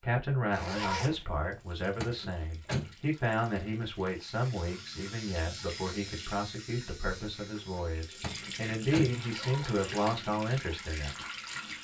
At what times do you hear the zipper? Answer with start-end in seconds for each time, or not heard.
0.5-1.2, 9.1-9.8.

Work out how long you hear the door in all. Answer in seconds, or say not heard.
2 s.